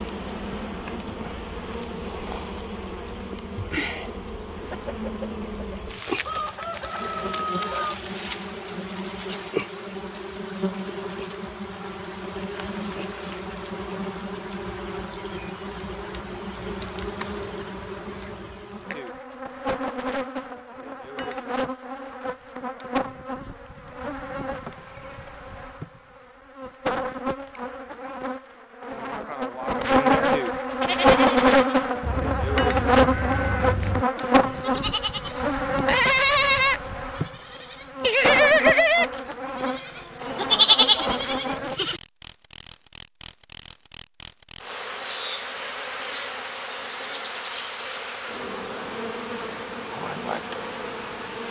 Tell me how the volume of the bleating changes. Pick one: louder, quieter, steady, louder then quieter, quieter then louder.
louder.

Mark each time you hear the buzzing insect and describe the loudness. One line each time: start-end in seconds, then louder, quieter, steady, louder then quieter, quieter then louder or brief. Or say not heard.
0.0-51.4 louder then quieter.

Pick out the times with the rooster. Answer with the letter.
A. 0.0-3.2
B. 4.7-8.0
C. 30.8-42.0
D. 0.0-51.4
B.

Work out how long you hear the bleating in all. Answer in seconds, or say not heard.
11 s.